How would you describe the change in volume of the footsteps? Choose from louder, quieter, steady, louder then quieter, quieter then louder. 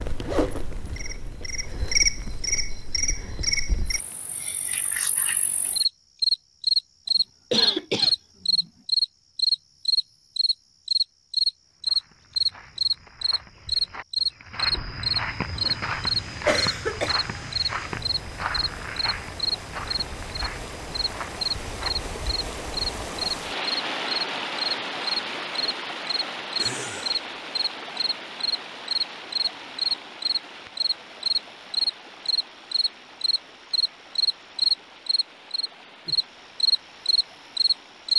louder then quieter.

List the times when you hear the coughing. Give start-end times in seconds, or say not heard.
7.0-8.7, 16.4-17.1, 26.6-27.2.